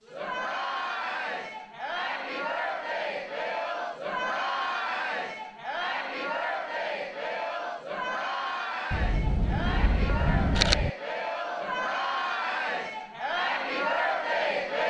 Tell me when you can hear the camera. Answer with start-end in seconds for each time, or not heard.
8.9-10.9.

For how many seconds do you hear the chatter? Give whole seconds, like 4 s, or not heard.
15 s.